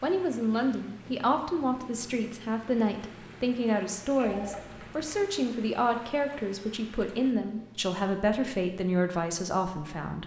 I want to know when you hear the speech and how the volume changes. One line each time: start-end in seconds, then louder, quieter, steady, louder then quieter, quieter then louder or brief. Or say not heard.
0.0-10.2 steady.